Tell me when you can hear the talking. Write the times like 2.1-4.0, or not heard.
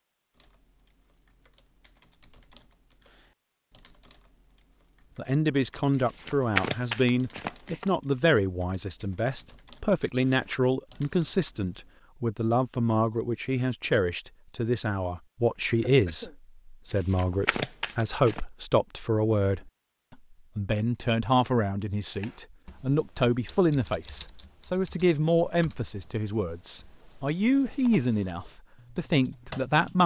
5.2-30.0.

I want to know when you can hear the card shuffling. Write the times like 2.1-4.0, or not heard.
6.0-7.9, 16.9-18.4.